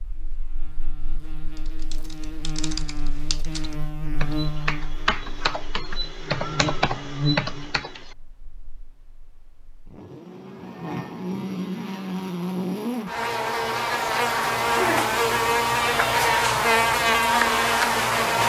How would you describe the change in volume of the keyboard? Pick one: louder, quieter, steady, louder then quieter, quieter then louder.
louder.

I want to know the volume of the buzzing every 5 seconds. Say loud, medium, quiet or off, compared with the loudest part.
quiet, quiet, medium, loud.